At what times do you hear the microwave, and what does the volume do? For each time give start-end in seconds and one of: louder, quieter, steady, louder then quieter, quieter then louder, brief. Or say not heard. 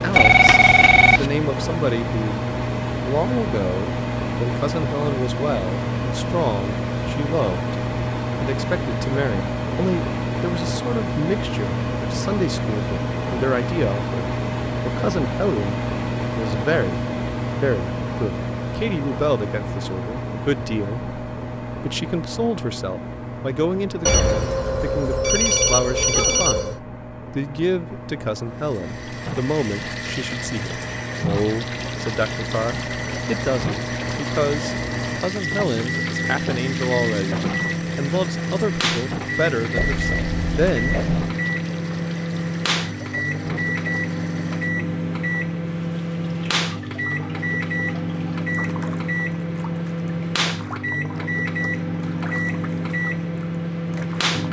0.0-54.4 quieter then louder.